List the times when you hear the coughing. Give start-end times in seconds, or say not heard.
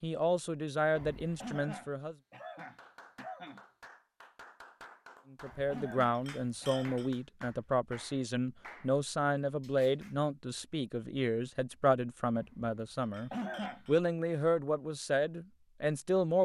1.4-3.6, 5.7-7.0, 13.3-13.8.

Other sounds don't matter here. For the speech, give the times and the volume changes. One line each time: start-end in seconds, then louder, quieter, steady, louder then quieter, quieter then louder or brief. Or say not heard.
0.0-2.1 brief
5.3-16.3 steady.